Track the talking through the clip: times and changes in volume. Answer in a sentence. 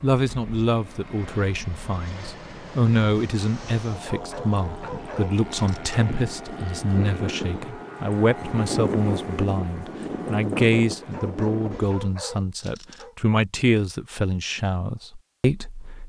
The talking can be heard from 0.0 to 16.0 s, at a steady volume.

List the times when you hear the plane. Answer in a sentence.
The plane can be heard from 0.0 to 12.1 s.